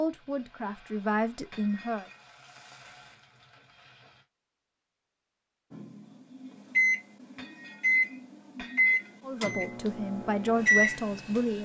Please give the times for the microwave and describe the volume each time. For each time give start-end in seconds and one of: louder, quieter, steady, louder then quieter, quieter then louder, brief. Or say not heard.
5.7-11.6 quieter then louder.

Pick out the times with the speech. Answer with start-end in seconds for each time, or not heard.
0.0-2.0, 9.2-11.6.